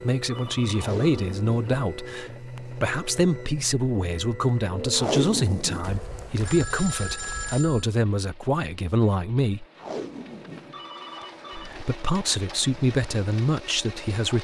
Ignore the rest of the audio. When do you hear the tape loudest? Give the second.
5 s.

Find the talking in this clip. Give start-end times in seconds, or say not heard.
0.0-9.7, 11.6-14.3.